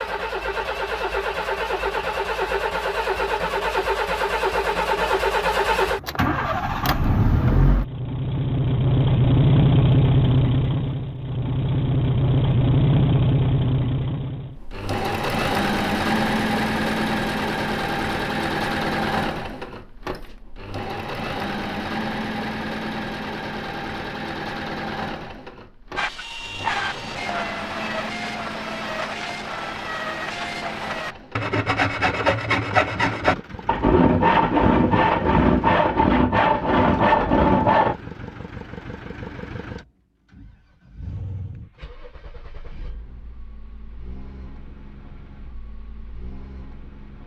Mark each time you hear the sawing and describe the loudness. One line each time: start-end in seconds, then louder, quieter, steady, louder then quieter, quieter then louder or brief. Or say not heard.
25.9-38.0 louder.